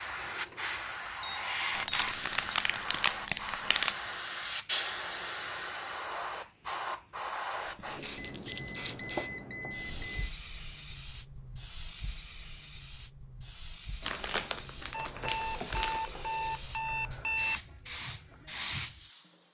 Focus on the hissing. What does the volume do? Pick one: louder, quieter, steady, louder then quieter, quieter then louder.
quieter then louder.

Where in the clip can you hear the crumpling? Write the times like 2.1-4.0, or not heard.
1.7-4.0, 7.6-9.2, 14.0-16.0.